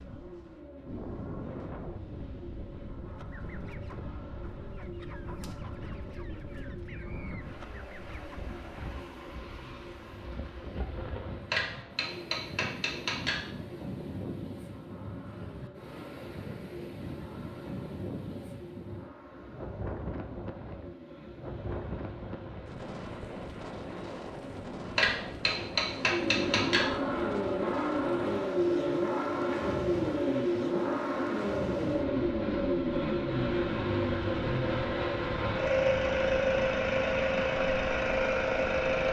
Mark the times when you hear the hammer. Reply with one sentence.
You can hear the hammer from 11.5 to 13.4 s and from 24.9 to 26.9 s.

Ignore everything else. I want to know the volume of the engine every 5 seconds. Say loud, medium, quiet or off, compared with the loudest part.
quiet, quiet, quiet, quiet, quiet, loud, loud, loud.